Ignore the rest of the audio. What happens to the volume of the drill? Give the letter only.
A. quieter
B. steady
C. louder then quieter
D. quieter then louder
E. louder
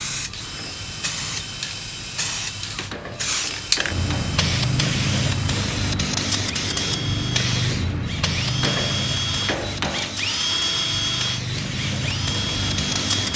E.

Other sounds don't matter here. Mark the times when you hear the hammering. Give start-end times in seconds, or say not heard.
2.9-4.4, 8.6-10.3.